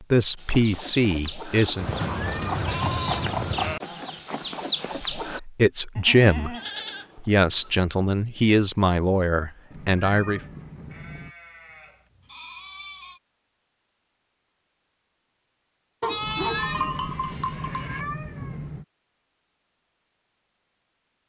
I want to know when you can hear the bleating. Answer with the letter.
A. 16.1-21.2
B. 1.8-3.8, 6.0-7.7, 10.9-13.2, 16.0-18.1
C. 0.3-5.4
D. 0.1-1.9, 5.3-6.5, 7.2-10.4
B.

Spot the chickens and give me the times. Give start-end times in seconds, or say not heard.
0.3-5.4.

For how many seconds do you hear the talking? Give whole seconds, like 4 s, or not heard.
6 s.